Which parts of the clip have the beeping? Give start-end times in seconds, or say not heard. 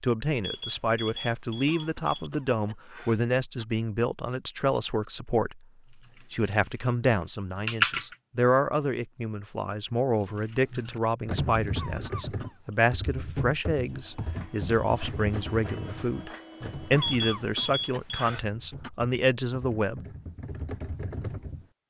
0.4-2.4, 17.0-18.4.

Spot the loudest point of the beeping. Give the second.
17 s.